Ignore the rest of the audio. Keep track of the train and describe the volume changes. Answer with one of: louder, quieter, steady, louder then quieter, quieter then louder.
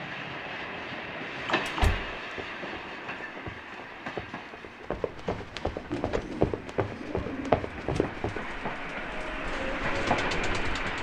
quieter then louder.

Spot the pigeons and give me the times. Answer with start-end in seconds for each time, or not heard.
5.9-10.9.